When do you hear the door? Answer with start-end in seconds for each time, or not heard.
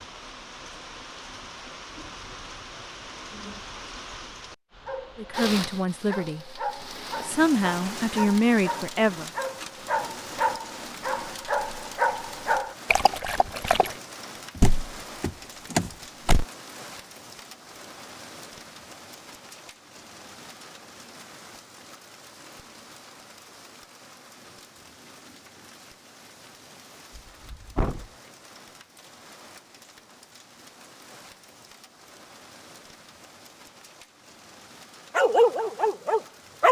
14.6-16.4, 27.1-28.1.